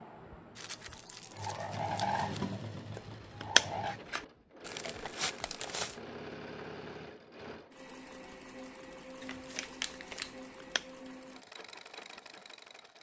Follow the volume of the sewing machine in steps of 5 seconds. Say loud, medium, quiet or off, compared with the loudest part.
loud, medium, medium.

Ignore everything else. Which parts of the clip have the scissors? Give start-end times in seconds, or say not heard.
3.0-4.2, 10.2-10.8.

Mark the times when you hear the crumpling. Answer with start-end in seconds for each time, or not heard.
0.6-2.4, 4.6-6.0, 9.2-10.3.